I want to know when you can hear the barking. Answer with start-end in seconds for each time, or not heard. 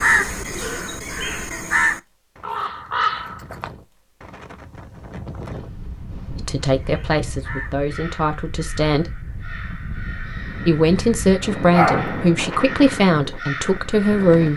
11.7-12.2.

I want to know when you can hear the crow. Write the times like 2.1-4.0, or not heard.
0.0-3.7, 6.8-14.5.